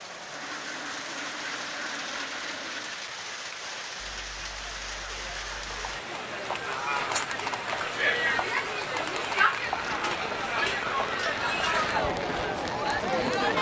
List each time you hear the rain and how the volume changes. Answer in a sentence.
You can hear the rain from 0.0 to 13.5 s, at a steady volume.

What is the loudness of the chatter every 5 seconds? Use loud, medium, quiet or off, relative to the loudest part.
quiet, loud, loud.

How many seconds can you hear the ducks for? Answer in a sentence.
The ducks can be heard for 3 seconds in total.